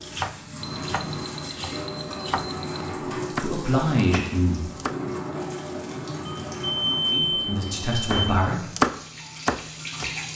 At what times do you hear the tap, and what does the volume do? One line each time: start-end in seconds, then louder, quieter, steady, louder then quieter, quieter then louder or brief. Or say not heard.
0.0-10.2 quieter.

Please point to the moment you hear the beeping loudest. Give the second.
7 s.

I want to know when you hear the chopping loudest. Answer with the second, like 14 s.
9 s.